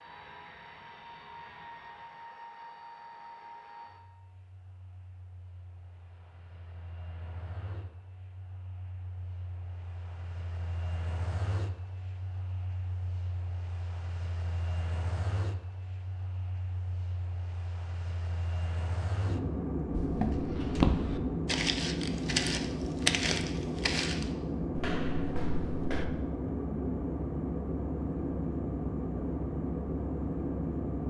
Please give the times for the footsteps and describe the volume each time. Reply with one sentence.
You can hear the footsteps from 19.9 to 26.1 s, getting quieter.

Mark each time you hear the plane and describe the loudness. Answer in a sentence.
You can hear the plane from 0.0 to 31.0 s, getting louder.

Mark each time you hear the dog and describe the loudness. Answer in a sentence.
The dog can't be heard in this clip.